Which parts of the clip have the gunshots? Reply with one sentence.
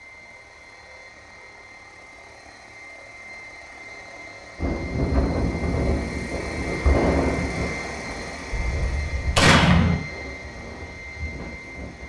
The gunshots can be heard from 8.5 to 9.9 s.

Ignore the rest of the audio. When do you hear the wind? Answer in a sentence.
You can hear the wind from 4.5 to 12.0 s.